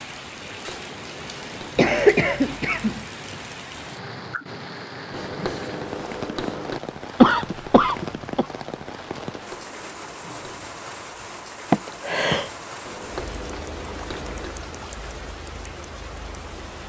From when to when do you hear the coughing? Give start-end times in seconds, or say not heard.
1.8-3.0, 7.2-8.4, 11.7-12.5.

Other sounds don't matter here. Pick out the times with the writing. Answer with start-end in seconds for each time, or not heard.
0.3-1.8, 5.1-6.8, 9.3-10.8, 12.8-14.6.